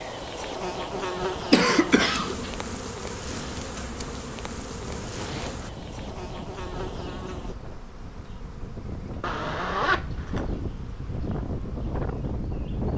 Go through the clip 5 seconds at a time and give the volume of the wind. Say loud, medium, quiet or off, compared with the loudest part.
medium, medium, loud.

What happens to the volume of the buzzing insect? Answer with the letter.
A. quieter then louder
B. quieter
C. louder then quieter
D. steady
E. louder
B.